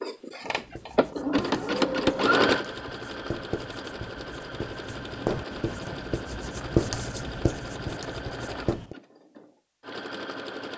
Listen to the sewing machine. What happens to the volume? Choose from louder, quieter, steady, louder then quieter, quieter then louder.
quieter.